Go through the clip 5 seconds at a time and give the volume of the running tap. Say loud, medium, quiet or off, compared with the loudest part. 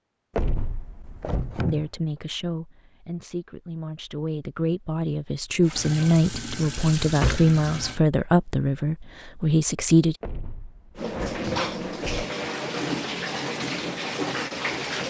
off, medium, loud.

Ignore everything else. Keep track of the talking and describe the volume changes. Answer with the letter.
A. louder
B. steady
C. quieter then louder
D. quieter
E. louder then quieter
A.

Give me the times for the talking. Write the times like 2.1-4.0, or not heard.
1.6-10.2.